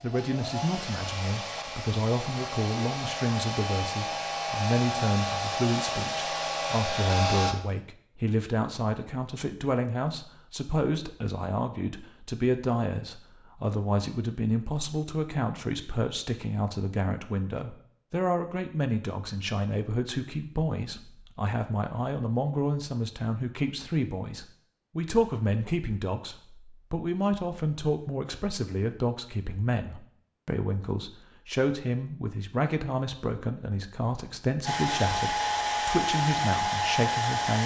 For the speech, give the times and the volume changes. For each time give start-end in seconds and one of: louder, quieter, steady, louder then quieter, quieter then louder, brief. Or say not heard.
0.0-37.6 steady.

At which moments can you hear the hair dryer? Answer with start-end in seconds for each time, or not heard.
0.0-7.5, 34.6-37.6.